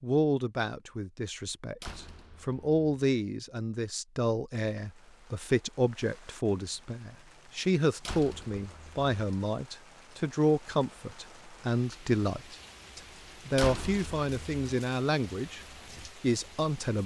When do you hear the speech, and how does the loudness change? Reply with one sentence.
You can hear the speech from 0.0 to 15.6 s, at a steady volume; and briefly from 16.2 to 17.0 s.